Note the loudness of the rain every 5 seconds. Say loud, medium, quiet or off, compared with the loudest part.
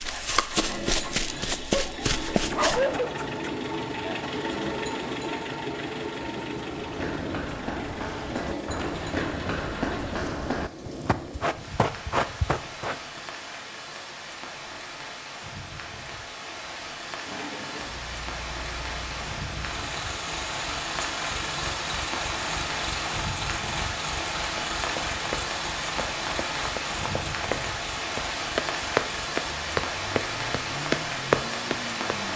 medium, medium, medium, medium, loud, loud, loud.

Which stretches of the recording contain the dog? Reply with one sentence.
The dog can be heard from 1.7 to 3.5 s.